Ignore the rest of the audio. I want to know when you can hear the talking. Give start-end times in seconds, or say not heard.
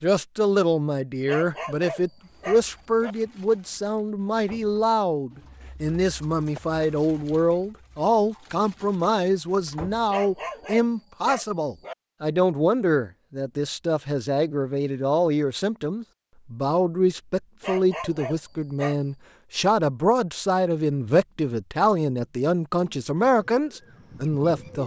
0.0-24.8.